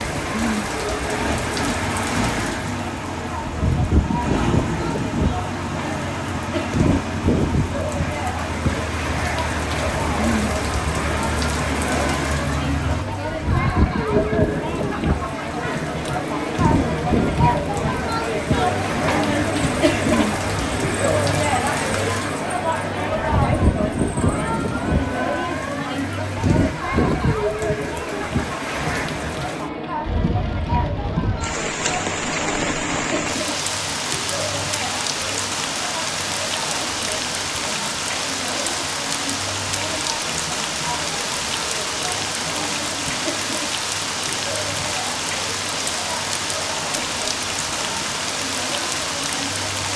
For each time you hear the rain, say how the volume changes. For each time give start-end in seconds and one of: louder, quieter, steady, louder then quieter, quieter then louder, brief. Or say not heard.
0.0-49.9 steady.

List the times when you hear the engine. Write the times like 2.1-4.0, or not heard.
0.0-13.1.